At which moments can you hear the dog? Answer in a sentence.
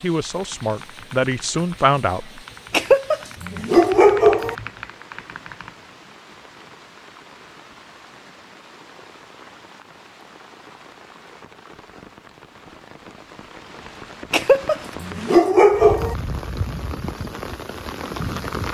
You can hear the dog from 2.7 to 4.5 s and from 14.3 to 16.1 s.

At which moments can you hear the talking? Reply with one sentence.
The talking can be heard from 0.0 to 2.4 s.